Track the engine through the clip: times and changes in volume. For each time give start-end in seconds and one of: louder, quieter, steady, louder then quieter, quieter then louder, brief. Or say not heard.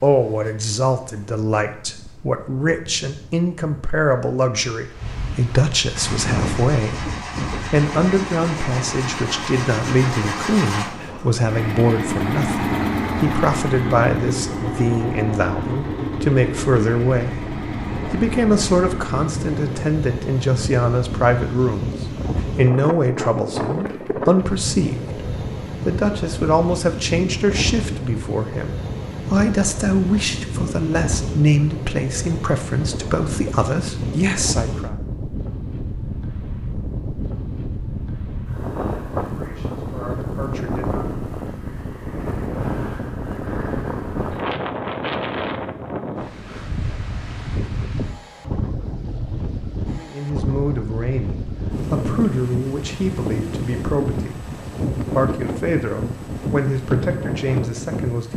5.9-19.8 louder then quieter.